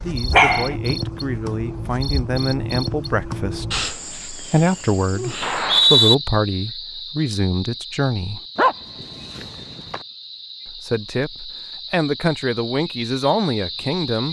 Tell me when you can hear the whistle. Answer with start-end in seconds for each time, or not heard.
5.4-6.2.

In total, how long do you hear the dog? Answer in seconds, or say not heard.
2 s.